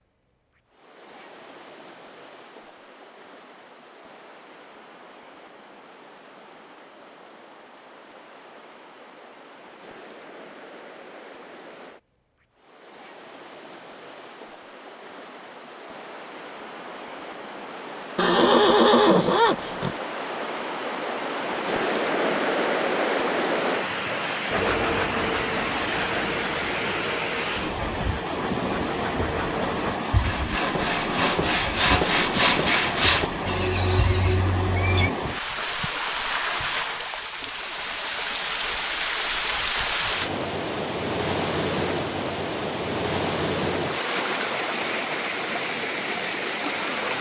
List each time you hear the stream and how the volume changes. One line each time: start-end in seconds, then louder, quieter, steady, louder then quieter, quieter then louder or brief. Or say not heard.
0.0-47.1 louder.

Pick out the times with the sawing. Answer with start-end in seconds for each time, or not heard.
24.5-33.3.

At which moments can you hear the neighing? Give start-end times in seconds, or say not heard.
18.1-19.9, 33.5-35.1.